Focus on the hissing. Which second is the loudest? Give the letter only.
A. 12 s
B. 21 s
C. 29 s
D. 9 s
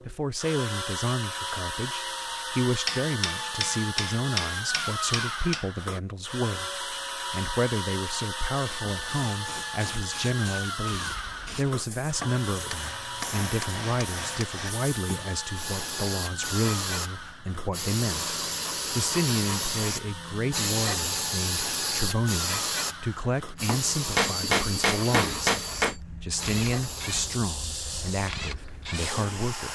B.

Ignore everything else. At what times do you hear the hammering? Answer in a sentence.
The hammering can be heard from 2.9 to 5.7 s, from 12.2 to 14.7 s and from 23.6 to 25.9 s.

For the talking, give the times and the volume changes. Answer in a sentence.
The talking can be heard from 0.0 to 29.7 s, at a steady volume.